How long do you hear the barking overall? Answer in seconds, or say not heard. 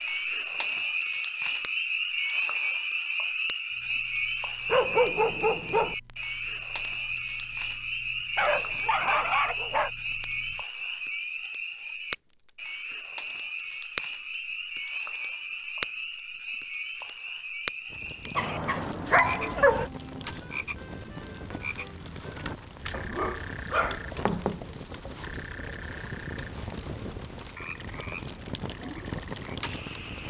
6 s.